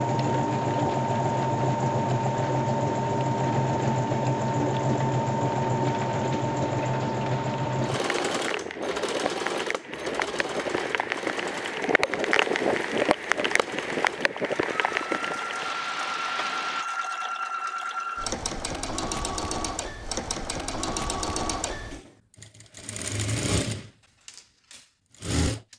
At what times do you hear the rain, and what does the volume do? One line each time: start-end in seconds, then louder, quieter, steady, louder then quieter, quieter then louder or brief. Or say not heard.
0.0-16.9 louder.